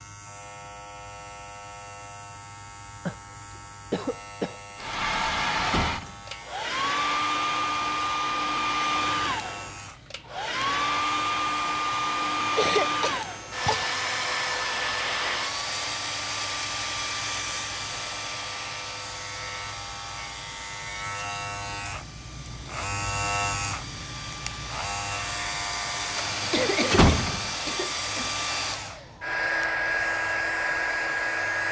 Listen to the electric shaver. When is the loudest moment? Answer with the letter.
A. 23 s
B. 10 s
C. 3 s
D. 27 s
A.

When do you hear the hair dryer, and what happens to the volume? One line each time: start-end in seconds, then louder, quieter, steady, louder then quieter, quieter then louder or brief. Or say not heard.
4.8-31.6 quieter then louder.